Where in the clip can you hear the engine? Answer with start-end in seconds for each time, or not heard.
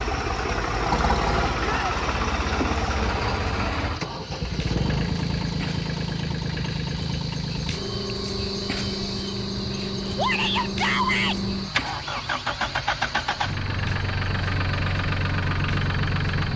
0.0-16.5.